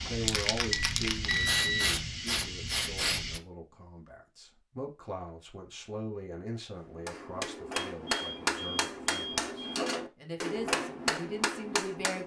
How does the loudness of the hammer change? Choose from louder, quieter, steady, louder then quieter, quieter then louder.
steady.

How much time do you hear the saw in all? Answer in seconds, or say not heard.
not heard.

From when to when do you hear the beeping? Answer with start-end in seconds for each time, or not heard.
0.7-1.9, 7.7-9.8.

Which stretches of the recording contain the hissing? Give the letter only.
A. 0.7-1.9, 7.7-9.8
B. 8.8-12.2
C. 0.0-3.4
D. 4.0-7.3
C.